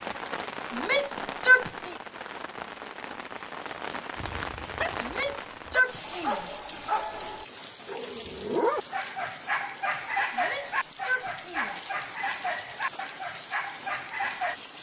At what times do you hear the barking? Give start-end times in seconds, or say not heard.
4.2-14.6.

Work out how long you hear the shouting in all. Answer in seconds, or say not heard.
4 s.